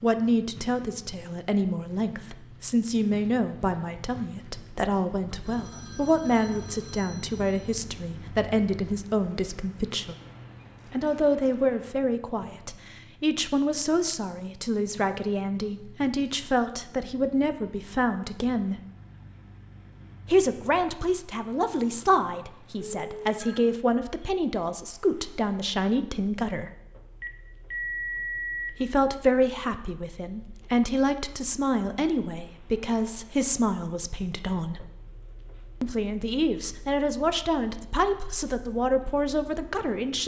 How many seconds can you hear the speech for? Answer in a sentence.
You can hear the speech for 35 seconds altogether.